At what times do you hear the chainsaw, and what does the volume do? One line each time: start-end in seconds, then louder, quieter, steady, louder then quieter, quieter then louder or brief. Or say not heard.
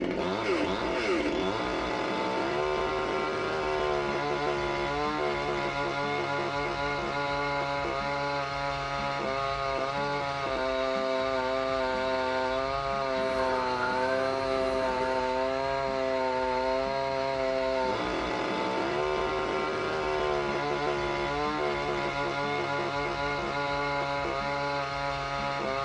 0.0-25.8 steady.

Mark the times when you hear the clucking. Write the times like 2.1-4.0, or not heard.
13.2-15.1.